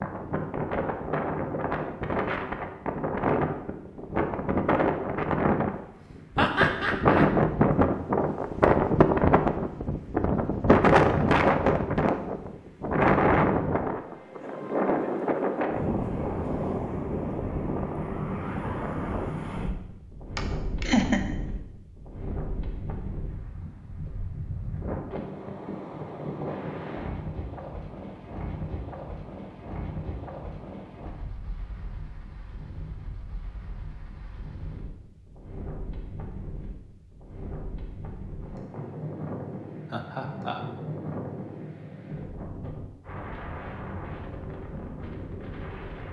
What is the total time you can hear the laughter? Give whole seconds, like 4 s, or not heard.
3 s.